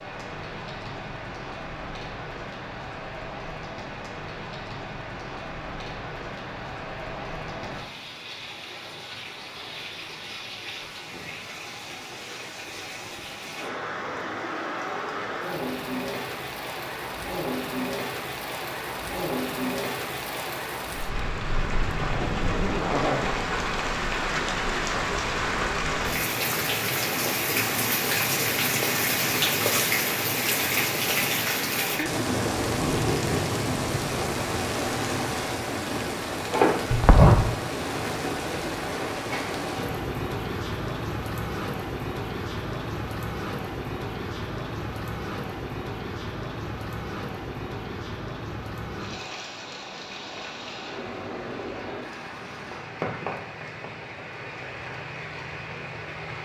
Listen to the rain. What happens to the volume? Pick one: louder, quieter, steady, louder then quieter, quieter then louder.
louder then quieter.